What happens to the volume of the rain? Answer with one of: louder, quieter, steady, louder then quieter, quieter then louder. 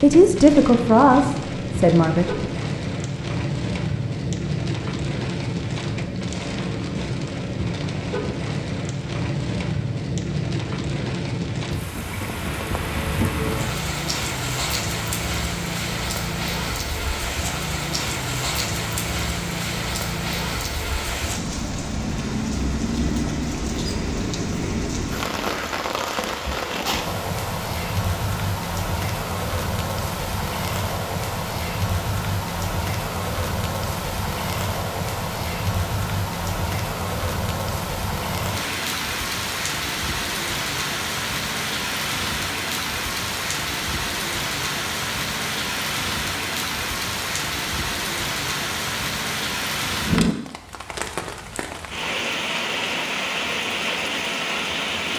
steady.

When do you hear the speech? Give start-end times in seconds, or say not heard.
0.0-2.3.